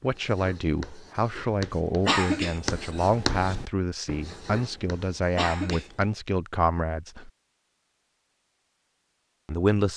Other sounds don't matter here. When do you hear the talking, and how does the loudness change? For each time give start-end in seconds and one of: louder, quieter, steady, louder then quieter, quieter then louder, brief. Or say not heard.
0.0-7.3 steady
9.4-9.9 brief.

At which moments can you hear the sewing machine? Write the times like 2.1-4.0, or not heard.
not heard.